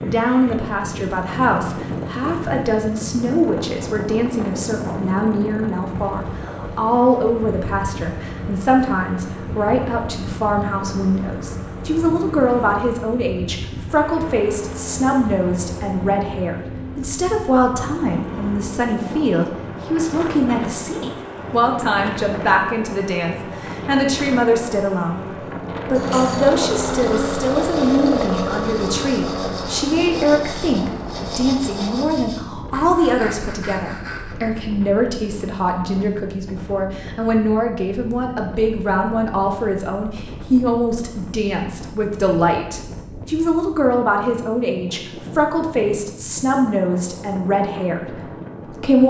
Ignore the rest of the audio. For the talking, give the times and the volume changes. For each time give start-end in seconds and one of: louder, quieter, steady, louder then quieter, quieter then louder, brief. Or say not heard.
0.0-49.0 steady.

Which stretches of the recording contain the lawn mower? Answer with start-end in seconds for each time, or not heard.
0.0-32.1.